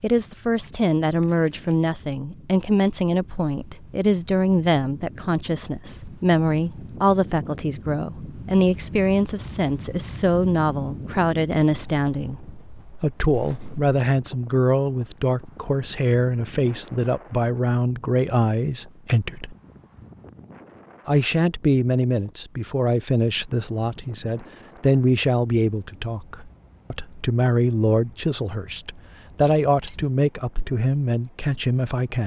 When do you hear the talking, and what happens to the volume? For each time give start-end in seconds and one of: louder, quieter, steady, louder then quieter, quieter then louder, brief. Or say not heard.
0.0-12.4 steady
13.0-19.6 steady
21.1-32.2 steady.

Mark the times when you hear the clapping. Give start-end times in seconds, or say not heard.
not heard.